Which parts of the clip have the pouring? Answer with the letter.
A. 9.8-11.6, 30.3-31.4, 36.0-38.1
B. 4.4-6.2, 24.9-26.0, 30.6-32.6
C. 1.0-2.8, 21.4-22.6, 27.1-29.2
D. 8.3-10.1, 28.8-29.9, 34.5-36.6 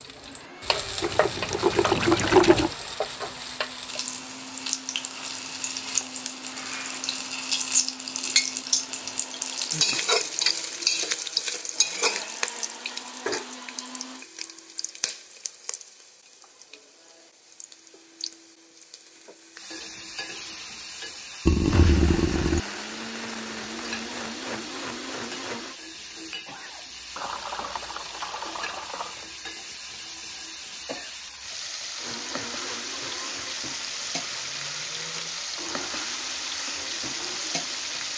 C.